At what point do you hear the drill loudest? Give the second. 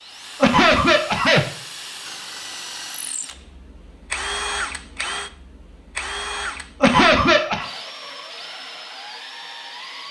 5 s.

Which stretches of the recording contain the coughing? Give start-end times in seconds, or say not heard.
0.4-1.4, 6.8-7.7.